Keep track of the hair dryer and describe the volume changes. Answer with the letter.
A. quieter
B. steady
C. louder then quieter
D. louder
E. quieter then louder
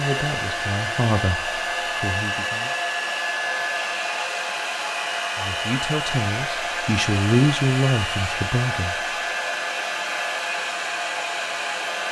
B.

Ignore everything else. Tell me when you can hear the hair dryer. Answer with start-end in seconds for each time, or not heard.
0.0-12.0.